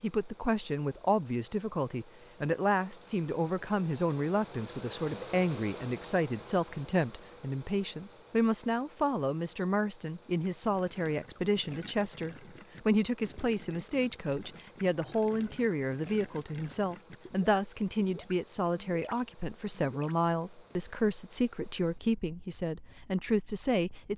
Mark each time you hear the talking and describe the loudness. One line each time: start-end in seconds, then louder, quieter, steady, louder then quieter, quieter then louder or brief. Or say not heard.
0.0-24.1 steady.